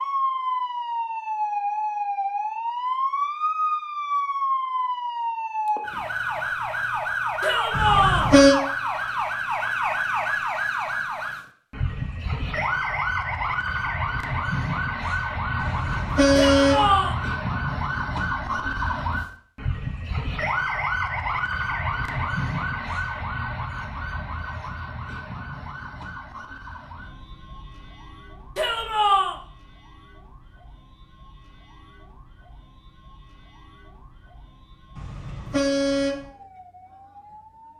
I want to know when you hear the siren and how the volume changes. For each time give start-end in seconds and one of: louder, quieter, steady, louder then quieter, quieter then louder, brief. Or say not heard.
0.0-37.7 quieter.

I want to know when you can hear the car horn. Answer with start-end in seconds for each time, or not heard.
7.7-8.6, 15.6-16.9, 35.0-36.2.